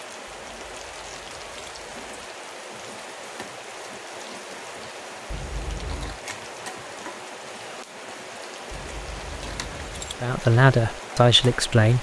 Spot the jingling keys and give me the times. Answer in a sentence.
You can hear the jingling keys from 0.5 to 2.2 s, from 5.3 to 6.2 s and from 8.7 to 10.2 s.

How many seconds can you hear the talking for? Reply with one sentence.
The talking can be heard for 2 seconds in total.